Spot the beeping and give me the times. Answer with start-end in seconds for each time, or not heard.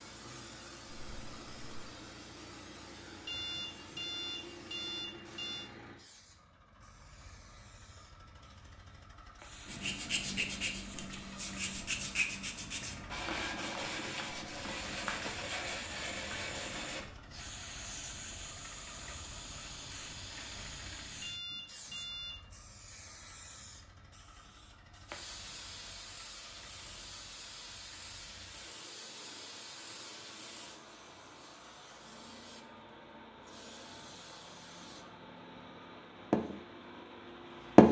3.2-5.7, 21.2-22.4.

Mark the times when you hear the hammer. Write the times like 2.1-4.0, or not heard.
not heard.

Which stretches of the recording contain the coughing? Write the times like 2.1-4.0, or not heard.
0.8-1.8.